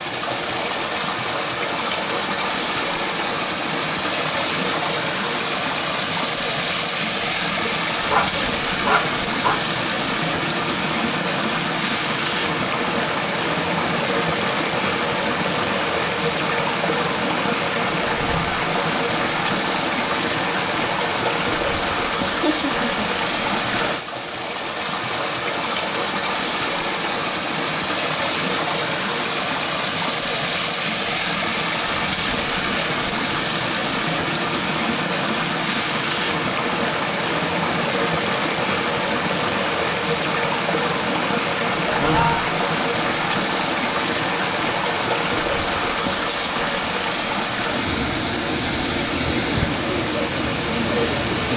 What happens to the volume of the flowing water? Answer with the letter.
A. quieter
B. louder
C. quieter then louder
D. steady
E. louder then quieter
D.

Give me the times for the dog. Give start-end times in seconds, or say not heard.
7.7-9.6.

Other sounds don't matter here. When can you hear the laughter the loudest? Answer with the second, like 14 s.
42 s.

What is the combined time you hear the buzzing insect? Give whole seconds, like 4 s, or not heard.
not heard.